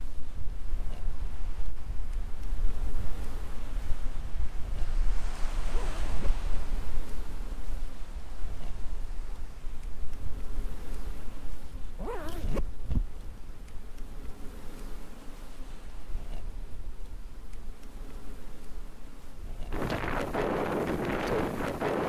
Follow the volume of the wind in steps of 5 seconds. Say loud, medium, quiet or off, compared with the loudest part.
quiet, quiet, quiet, quiet, loud.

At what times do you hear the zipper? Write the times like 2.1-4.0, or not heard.
5.7-6.4, 11.9-13.7.